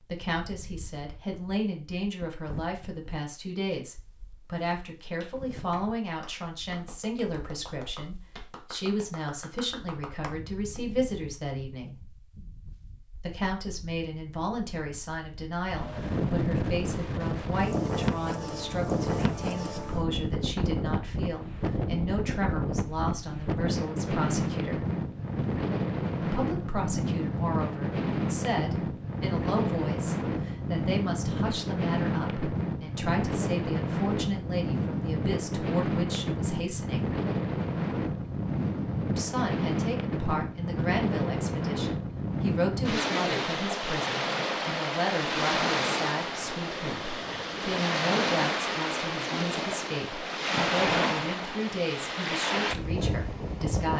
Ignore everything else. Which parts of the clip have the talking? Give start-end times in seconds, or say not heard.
0.0-11.9, 13.2-24.9, 26.2-37.1, 39.1-53.9.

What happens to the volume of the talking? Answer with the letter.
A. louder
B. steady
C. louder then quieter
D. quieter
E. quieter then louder
B.